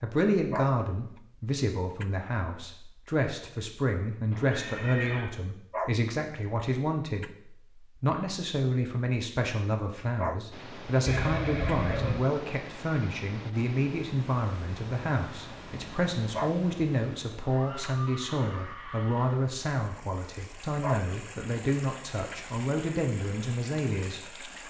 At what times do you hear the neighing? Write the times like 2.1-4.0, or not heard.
4.3-5.2, 11.1-12.2, 17.4-19.4.